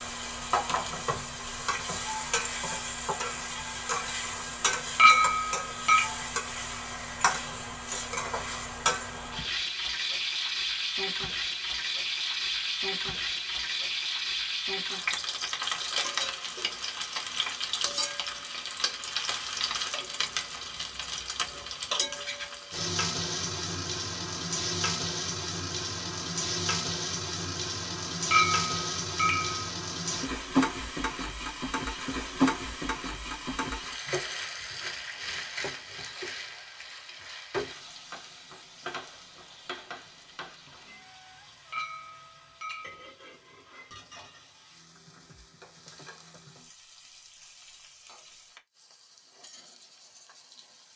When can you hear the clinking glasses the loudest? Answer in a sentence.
The volume of the clinking glasses peaks at 5 seconds.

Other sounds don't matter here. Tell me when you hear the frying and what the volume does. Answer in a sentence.
You can hear the frying from 0.0 to 50.9 s, getting quieter.